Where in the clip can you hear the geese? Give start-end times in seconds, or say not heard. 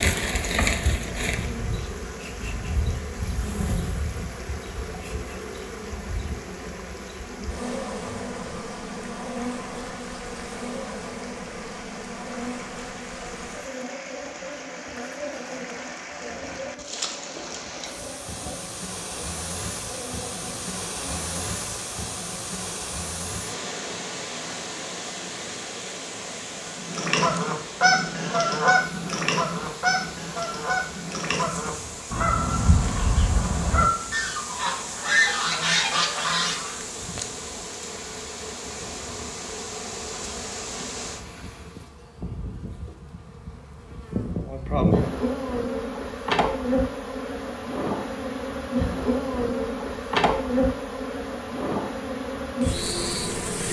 26.8-36.8.